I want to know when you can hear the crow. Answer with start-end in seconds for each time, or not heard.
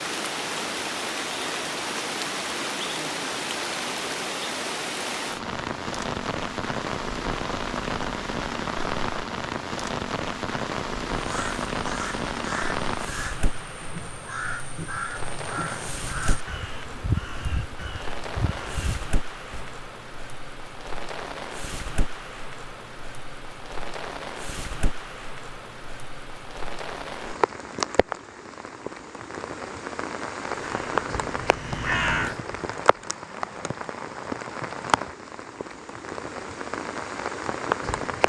11.2-19.8, 30.4-32.4.